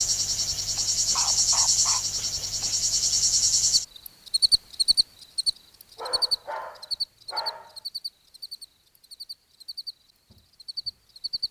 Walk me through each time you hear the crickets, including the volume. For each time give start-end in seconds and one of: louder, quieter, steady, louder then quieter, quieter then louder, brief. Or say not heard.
0.0-11.4 quieter.